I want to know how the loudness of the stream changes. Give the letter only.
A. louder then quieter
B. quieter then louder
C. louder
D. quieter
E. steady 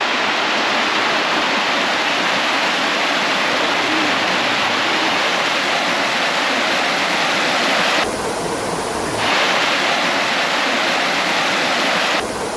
E.